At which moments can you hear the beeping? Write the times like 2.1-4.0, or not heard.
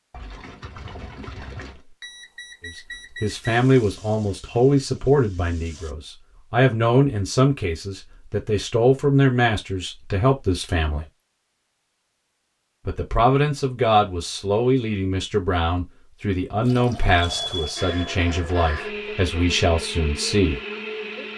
1.8-3.5, 17.2-18.1.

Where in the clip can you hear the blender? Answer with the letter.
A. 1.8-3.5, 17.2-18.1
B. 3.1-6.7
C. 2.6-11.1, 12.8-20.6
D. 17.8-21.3
D.